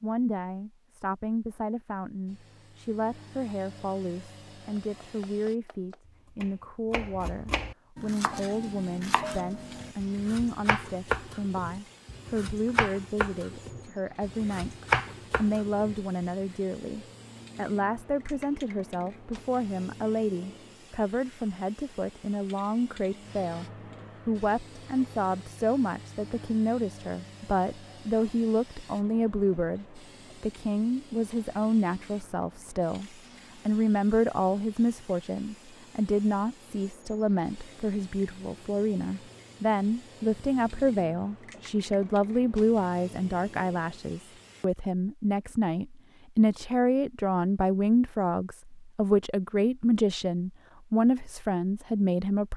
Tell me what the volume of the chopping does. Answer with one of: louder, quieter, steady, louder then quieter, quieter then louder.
louder.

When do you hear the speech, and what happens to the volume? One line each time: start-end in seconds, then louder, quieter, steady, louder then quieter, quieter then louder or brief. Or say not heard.
0.0-14.8 steady
15.3-23.6 steady
24.2-52.5 steady.